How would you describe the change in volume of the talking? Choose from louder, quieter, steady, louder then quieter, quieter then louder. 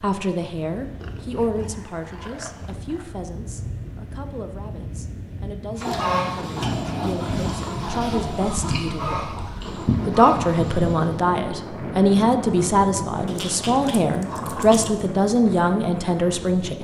quieter then louder.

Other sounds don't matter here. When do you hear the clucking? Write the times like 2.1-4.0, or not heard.
5.8-11.2.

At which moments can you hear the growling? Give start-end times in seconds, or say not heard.
1.0-3.1, 5.8-8.5, 13.2-15.1.